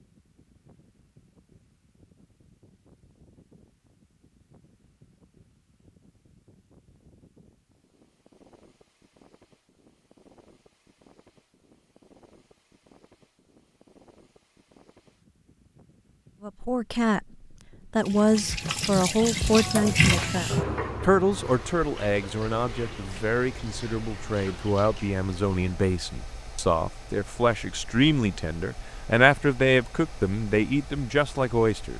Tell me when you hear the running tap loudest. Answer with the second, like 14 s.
20 s.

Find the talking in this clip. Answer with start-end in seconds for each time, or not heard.
16.4-17.2, 17.9-31.9.